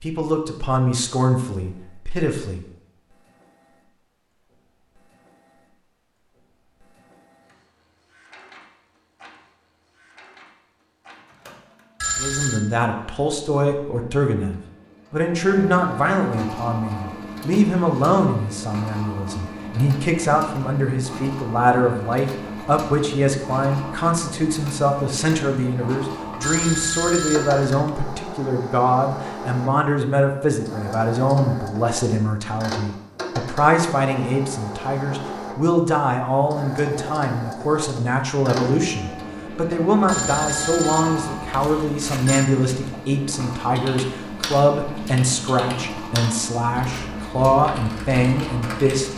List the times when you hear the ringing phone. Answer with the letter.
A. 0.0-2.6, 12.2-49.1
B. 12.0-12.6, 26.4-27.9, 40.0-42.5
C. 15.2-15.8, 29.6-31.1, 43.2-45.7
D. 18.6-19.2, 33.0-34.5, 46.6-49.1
B.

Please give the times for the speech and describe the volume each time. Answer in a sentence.
The speech can be heard briefly from 0.0 to 2.6 s; and from 12.2 to 49.1 s, at a steady volume.